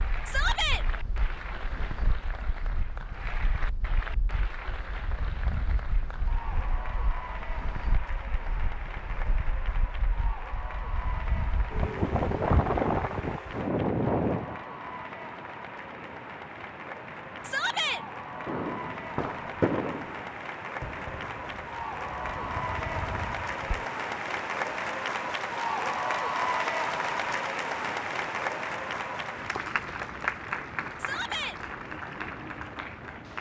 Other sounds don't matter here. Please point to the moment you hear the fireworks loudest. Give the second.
20 s.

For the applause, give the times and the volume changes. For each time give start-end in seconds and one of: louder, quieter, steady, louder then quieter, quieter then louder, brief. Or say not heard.
0.0-33.3 louder.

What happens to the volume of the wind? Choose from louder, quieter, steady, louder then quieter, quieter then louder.
louder then quieter.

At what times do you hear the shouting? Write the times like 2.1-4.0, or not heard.
0.2-0.8, 17.4-18.0, 30.9-31.6.